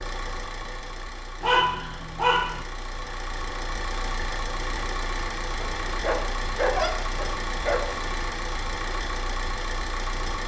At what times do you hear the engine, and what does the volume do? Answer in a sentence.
You can hear the engine from 0.0 to 10.4 s, getting louder.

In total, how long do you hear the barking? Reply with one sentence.
The barking can be heard for 4 seconds in total.